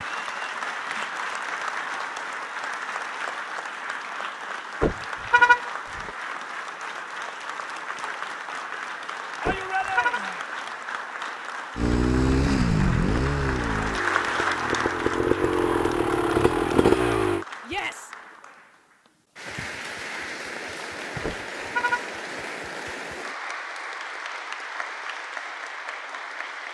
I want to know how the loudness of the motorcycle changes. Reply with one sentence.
The volume of the motorcycle goes down, then up.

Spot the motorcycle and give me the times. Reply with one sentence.
The motorcycle can be heard from 11.8 to 17.4 s.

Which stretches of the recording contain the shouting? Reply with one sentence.
The shouting can be heard from 9.4 to 10.4 s and from 17.6 to 18.1 s.